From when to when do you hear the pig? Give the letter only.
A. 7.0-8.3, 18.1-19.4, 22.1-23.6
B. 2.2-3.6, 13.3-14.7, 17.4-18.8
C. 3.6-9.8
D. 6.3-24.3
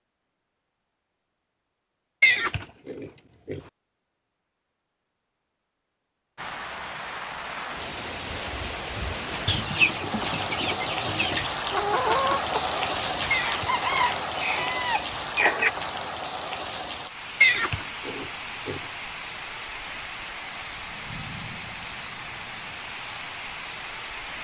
B.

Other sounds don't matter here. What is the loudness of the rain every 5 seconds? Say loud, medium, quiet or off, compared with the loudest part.
off, medium, loud, medium, medium.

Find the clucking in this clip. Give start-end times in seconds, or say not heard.
9.4-15.7.